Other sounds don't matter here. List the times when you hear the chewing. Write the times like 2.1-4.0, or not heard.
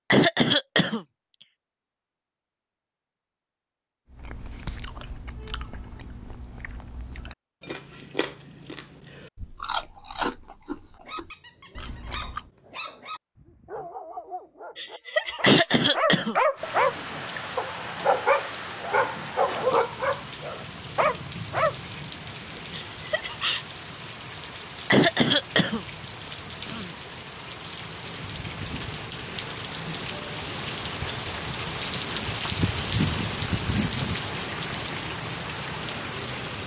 4.1-12.5.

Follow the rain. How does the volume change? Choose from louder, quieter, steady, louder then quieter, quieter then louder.
louder.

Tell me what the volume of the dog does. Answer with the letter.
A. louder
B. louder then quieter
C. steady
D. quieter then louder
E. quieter
A.